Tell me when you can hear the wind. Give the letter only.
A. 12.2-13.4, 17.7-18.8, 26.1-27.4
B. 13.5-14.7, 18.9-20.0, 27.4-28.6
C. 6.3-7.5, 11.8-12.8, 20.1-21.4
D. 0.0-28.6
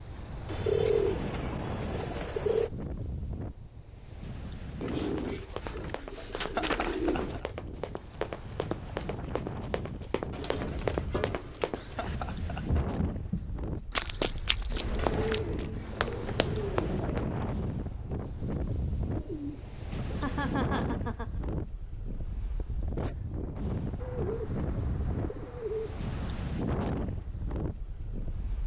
D.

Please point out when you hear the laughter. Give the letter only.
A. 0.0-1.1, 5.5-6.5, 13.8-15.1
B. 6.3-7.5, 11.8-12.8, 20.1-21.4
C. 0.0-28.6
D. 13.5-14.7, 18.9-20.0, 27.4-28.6
B.